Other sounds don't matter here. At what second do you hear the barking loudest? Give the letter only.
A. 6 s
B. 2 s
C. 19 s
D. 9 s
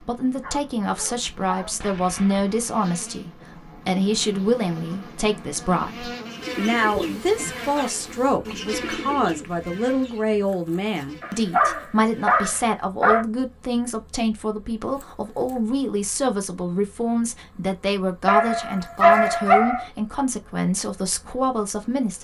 C.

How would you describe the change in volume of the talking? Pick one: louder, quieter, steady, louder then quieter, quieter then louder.
steady.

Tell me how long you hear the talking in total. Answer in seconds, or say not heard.
22 s.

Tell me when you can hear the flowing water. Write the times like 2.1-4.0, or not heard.
not heard.